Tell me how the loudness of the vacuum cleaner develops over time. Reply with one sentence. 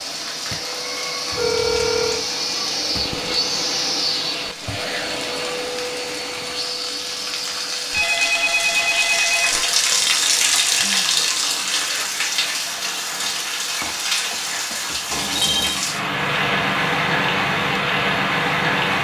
The loudness of the vacuum cleaner goes down.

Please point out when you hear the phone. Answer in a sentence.
You can hear the phone from 1.3 to 2.2 s, from 7.9 to 9.7 s and from 15.1 to 15.8 s.